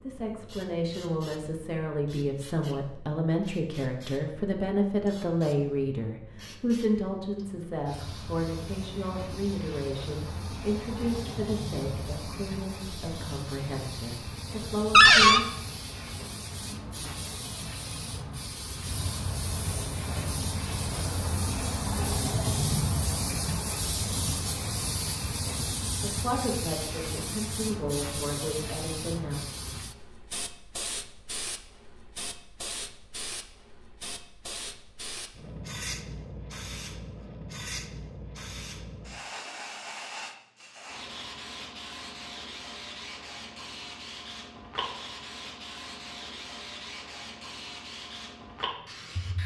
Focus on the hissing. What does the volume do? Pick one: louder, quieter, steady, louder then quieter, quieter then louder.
louder then quieter.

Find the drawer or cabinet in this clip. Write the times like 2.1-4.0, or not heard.
14.9-15.4.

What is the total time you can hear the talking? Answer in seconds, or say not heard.
19 s.